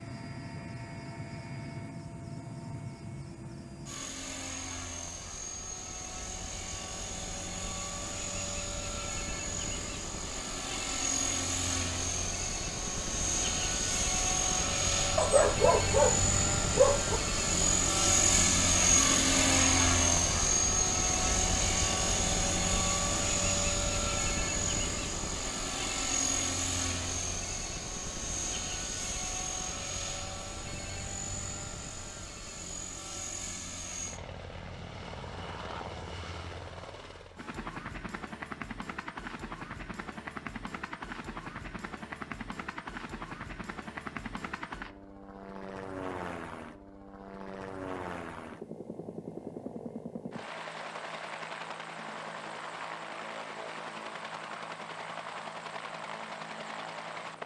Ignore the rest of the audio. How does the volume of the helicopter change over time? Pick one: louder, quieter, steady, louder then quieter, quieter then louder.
louder then quieter.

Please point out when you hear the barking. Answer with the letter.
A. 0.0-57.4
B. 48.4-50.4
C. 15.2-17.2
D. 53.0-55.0
C.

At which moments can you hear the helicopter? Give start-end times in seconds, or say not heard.
0.0-57.4.